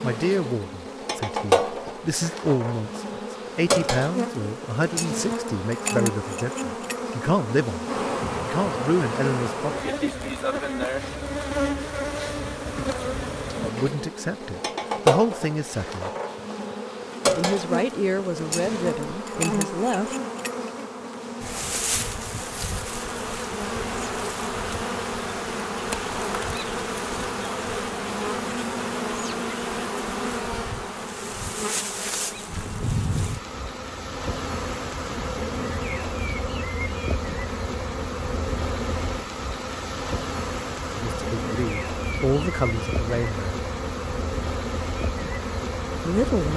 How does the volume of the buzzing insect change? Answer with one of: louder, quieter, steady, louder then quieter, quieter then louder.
steady.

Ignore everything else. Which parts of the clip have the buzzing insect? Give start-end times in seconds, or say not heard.
0.0-46.5.